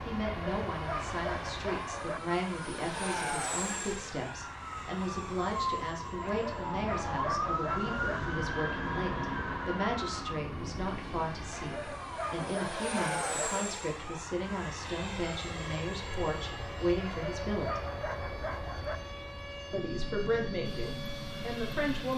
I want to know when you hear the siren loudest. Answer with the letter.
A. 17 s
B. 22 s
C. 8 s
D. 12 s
C.